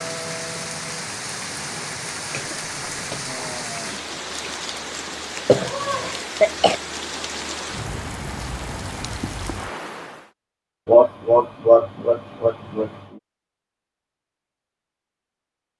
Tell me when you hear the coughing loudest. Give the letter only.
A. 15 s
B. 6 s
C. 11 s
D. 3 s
C.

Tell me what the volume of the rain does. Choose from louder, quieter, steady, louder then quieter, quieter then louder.
steady.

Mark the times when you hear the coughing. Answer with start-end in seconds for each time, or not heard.
2.3-3.3, 5.5-6.8, 10.8-13.0.